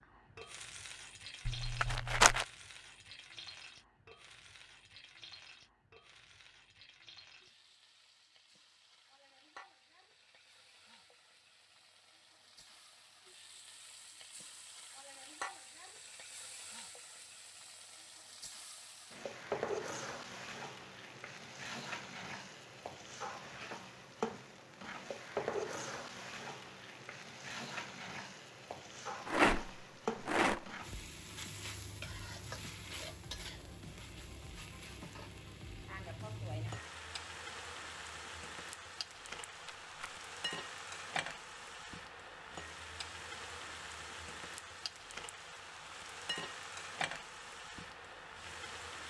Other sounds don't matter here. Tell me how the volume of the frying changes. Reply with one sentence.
The volume of the frying goes up.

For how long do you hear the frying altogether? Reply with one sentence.
The frying can be heard for 49 seconds in total.